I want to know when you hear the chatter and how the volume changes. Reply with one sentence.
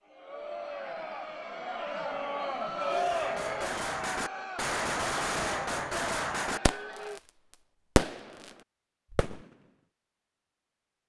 You can hear the chatter from 0.0 to 7.2 s, getting louder then quieter.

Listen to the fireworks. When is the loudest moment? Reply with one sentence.
The loudest moment of the fireworks is at 8 seconds.